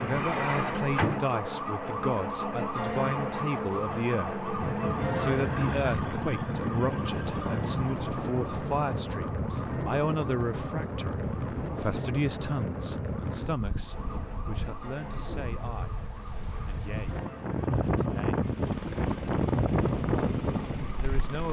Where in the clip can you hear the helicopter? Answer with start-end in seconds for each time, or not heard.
18.4-21.4.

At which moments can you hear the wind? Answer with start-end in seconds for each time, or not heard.
4.5-21.4.